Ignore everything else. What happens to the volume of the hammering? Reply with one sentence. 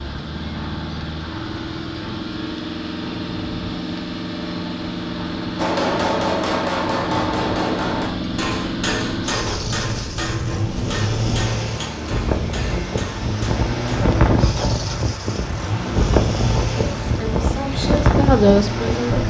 The loudness of the hammering goes down.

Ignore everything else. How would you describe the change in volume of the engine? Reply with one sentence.
The loudness of the engine stays about the same.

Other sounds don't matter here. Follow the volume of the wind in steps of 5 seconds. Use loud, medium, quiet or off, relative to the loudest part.
quiet, medium, loud, loud.